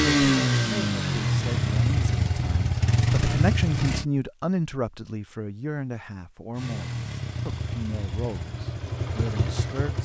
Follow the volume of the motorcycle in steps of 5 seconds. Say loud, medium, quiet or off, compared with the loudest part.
loud, medium.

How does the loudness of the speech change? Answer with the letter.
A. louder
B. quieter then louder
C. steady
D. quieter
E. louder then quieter
E.